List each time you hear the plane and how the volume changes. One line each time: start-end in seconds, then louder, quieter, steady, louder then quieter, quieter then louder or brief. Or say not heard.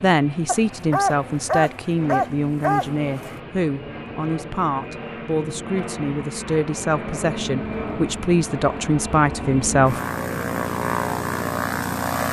0.0-12.2 louder.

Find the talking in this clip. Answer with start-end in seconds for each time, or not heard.
0.0-10.0.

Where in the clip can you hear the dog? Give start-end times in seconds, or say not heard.
0.5-3.4.